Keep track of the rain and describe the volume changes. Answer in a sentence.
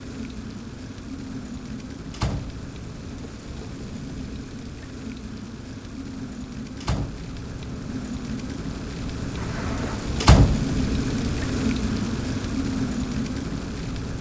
The volume of the rain goes up.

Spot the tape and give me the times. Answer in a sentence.
You can hear the tape from 9.3 to 10.2 s.